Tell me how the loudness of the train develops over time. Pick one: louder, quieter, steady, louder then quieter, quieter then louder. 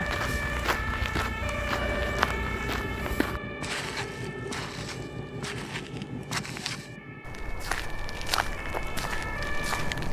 quieter.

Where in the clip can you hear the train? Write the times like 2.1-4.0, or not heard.
1.7-10.0.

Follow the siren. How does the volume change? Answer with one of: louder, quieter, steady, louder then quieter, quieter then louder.
quieter then louder.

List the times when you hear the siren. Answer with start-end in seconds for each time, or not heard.
0.0-10.0.